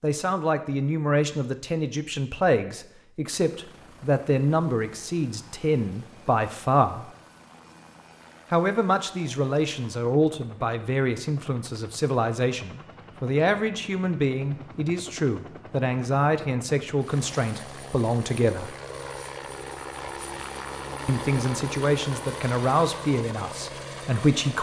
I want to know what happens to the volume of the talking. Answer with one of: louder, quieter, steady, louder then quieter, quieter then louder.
steady.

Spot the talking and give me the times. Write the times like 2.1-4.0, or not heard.
0.0-7.0, 8.5-18.8, 21.1-24.5.